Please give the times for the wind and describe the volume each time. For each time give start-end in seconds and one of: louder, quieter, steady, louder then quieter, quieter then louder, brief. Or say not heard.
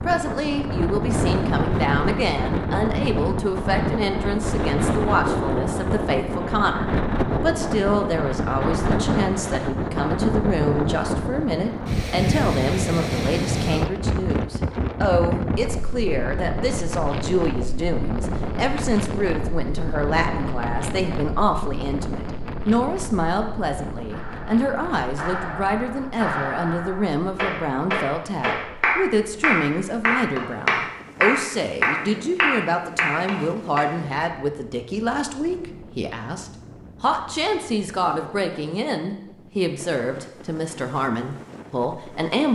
0.0-42.5 quieter.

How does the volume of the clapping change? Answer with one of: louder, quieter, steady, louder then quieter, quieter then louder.
louder.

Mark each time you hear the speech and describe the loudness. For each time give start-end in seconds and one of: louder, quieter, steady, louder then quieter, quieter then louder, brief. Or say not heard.
0.1-42.5 steady.